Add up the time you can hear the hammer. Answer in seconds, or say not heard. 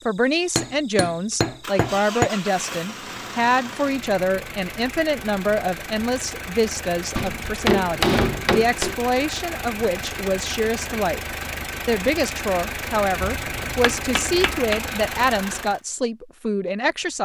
5 s.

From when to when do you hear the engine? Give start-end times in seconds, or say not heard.
0.0-15.8.